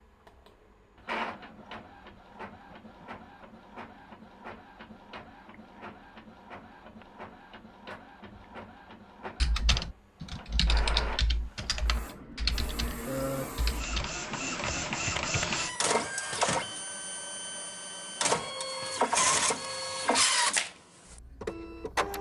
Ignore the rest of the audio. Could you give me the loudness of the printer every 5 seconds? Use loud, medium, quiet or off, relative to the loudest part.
quiet, quiet, medium, loud, loud.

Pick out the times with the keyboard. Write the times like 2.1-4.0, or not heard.
9.4-15.7.